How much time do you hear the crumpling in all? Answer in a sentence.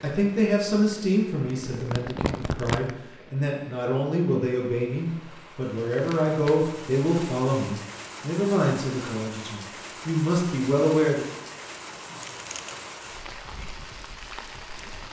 The crumpling can be heard for 3 seconds in total.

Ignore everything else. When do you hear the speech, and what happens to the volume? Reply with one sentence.
The speech can be heard from 0.0 to 11.2 s, at a steady volume.